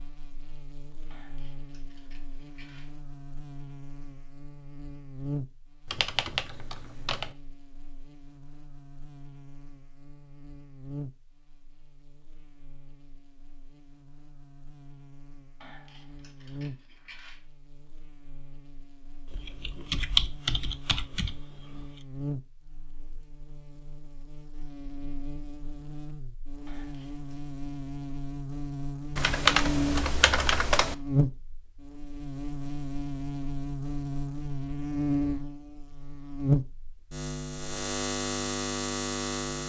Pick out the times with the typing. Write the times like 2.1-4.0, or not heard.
5.9-7.3, 19.3-21.9, 29.1-30.9.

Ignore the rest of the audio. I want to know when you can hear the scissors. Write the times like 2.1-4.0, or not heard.
1.1-3.0, 15.6-17.4, 26.6-27.2.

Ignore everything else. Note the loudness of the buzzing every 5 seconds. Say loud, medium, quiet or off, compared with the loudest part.
quiet, quiet, quiet, quiet, quiet, medium, loud, loud.